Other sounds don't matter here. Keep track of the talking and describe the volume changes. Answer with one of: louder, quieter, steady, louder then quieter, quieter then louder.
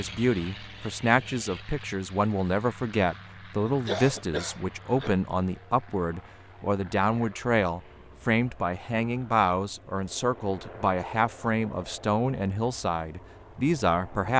steady.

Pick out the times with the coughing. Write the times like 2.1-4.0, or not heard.
3.6-5.2.